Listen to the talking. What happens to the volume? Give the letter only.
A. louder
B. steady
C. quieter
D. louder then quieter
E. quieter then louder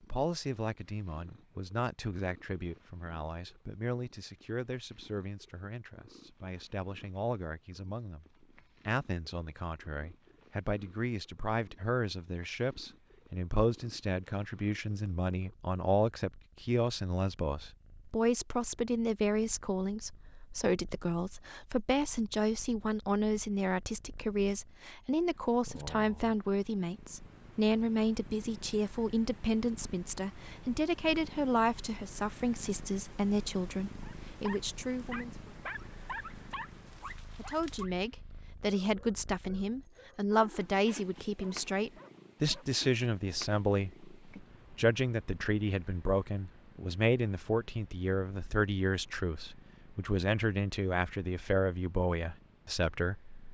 A.